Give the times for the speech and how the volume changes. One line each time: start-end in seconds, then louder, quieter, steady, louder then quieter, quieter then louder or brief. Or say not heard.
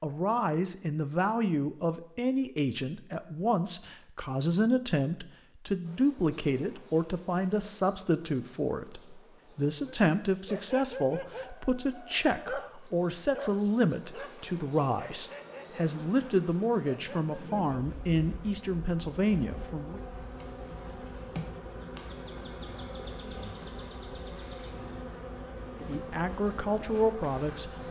0.0-20.0 steady
25.9-27.8 brief.